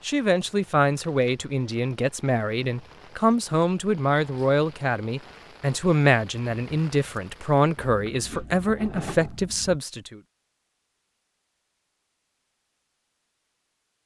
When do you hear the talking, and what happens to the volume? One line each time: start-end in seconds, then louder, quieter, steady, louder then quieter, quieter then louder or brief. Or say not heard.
0.0-10.2 steady.